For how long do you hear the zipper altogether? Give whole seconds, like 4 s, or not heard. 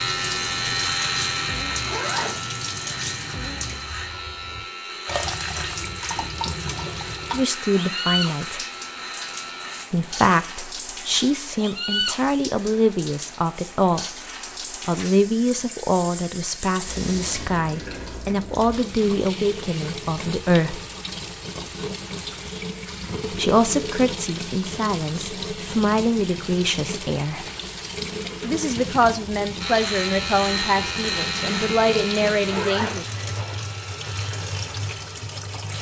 2 s.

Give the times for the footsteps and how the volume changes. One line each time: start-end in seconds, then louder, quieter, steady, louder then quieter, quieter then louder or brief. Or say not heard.
not heard.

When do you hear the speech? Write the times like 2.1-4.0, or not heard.
7.3-8.6, 9.9-20.8, 23.3-27.4, 28.4-33.1.